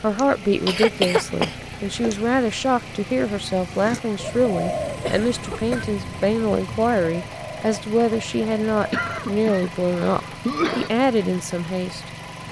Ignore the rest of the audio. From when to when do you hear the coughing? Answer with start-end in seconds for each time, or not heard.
0.1-2.1, 5.0-5.8, 8.9-10.9.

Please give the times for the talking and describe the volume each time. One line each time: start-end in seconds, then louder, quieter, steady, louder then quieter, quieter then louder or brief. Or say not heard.
0.0-12.1 steady.